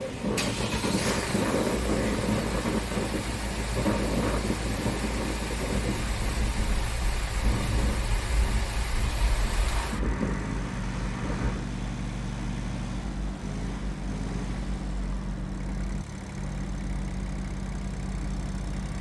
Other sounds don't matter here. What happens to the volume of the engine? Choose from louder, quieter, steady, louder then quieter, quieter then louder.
steady.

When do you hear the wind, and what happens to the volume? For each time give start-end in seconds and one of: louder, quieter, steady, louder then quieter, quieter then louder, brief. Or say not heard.
0.0-11.7 quieter.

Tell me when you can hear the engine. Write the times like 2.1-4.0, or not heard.
0.0-18.9.